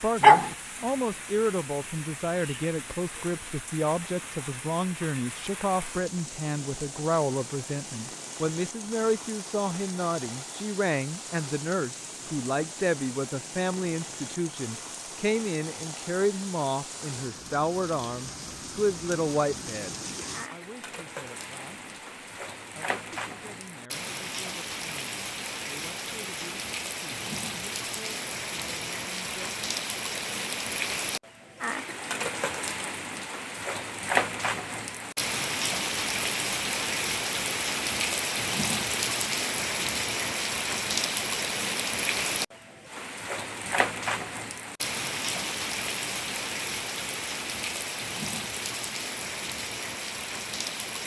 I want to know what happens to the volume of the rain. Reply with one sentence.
The volume of the rain goes up.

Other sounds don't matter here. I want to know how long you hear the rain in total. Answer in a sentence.
The rain can be heard for 51 seconds in total.